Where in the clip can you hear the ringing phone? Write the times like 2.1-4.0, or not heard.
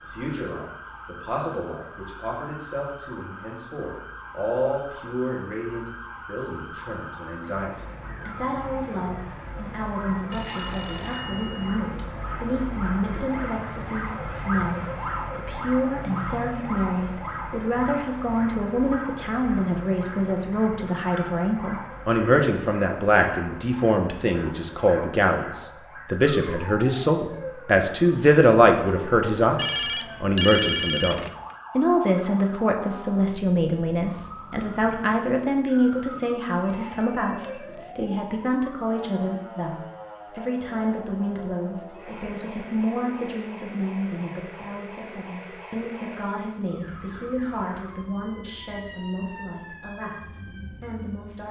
10.3-12.0, 29.6-31.6, 36.6-38.0.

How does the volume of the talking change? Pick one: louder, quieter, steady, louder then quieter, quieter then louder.
louder then quieter.